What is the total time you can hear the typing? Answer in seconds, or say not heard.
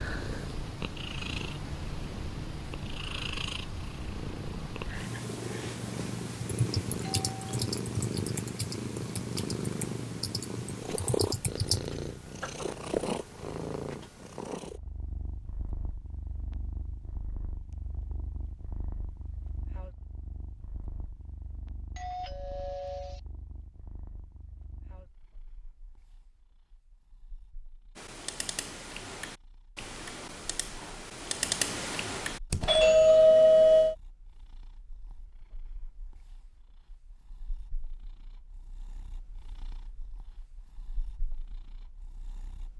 11 s.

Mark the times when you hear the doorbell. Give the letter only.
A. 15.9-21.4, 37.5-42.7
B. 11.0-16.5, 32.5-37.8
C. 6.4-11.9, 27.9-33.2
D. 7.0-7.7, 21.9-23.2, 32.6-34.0
D.